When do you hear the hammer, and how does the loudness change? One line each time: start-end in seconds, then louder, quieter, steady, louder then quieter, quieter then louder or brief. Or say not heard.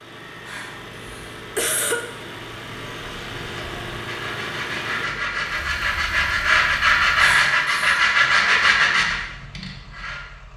not heard.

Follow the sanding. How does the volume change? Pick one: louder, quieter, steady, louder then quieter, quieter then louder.
louder.